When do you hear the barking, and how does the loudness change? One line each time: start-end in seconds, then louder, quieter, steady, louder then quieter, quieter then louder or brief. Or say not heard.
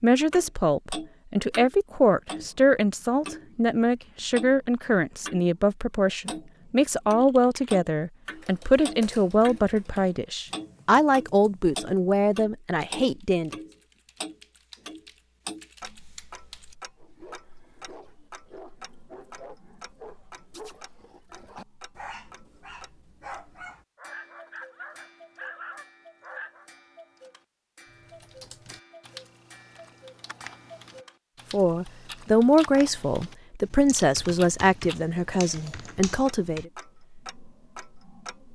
16.9-26.6 louder.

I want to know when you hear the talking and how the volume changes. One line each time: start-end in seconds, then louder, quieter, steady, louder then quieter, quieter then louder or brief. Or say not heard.
0.0-13.5 steady
31.5-36.6 quieter.